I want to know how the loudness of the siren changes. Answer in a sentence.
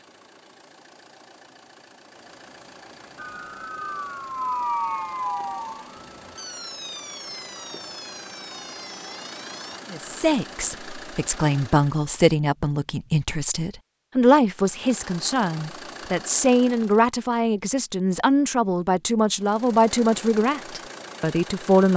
The loudness of the siren goes down.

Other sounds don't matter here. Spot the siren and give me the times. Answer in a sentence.
The siren can be heard from 3.1 to 9.8 s.